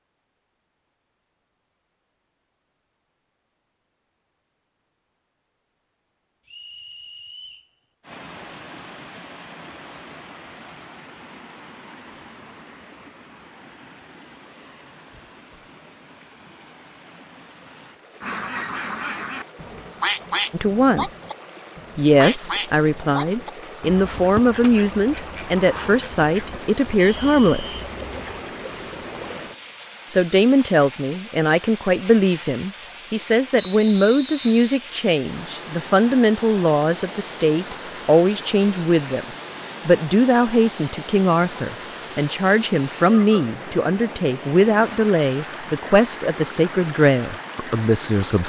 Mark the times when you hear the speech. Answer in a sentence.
You can hear the speech from 20.5 to 21.1 s, from 21.9 to 27.9 s, from 30.1 to 39.2 s and from 39.9 to 48.4 s.